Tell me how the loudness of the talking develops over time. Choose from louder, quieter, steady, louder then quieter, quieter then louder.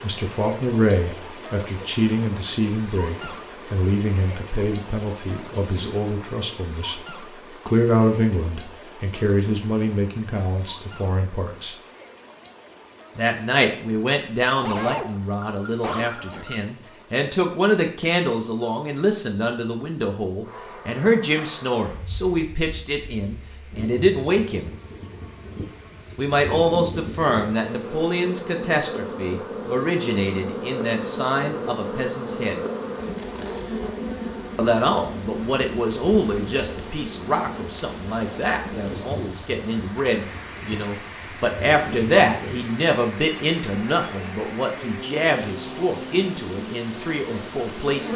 steady.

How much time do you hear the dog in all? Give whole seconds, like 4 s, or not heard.
2 s.